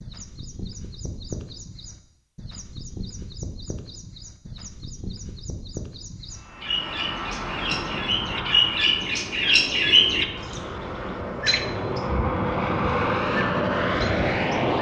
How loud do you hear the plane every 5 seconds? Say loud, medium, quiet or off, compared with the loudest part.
off, medium, loud.